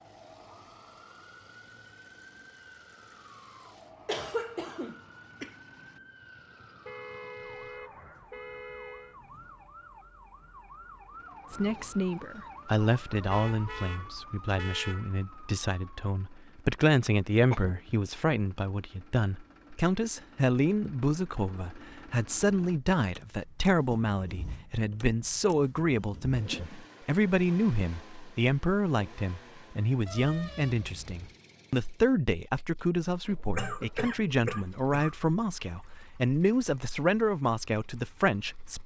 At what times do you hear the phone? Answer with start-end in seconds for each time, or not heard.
not heard.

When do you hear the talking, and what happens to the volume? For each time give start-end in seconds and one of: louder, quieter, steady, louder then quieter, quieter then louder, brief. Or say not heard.
11.5-38.8 steady.